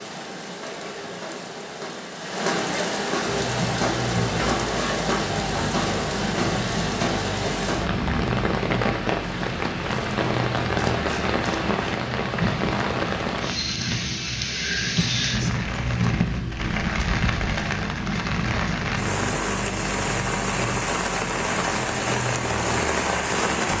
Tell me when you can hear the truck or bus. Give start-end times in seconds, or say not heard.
3.2-23.7.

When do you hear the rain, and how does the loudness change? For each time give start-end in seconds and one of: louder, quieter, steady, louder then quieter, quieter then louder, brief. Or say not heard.
0.0-23.7 steady.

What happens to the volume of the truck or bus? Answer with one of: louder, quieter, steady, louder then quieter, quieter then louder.
steady.